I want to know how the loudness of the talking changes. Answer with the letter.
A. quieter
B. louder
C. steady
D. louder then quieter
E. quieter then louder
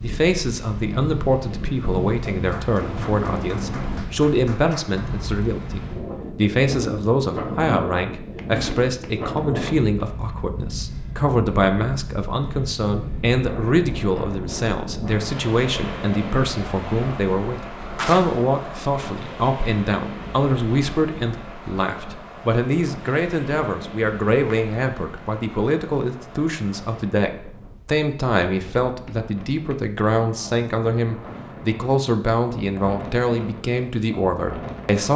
C.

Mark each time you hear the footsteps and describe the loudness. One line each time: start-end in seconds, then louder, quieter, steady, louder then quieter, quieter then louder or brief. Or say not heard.
not heard.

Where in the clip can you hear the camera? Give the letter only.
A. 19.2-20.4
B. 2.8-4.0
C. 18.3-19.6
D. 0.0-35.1
B.